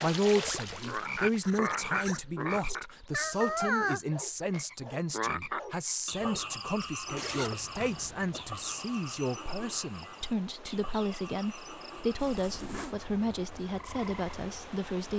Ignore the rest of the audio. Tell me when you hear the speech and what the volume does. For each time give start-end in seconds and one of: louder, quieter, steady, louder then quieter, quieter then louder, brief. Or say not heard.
0.0-15.1 steady.